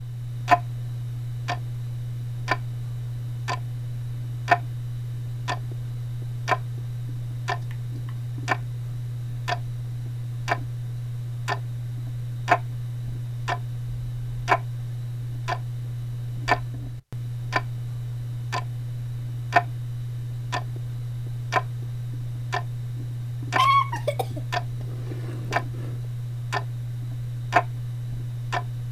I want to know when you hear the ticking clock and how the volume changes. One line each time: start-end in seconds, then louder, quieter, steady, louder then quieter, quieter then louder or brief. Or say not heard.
0.0-28.8 steady.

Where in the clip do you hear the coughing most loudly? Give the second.
24 s.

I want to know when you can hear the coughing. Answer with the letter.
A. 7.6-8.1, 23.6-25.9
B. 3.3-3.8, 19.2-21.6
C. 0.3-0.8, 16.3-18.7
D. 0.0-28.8
A.